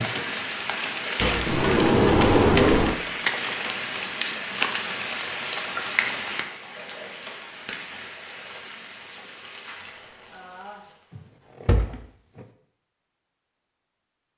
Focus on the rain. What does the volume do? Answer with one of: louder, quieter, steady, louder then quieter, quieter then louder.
quieter.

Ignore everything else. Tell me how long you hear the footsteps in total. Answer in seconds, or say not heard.
not heard.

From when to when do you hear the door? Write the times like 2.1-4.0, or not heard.
1.2-3.0, 11.2-12.4.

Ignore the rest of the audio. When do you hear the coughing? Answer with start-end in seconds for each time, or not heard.
not heard.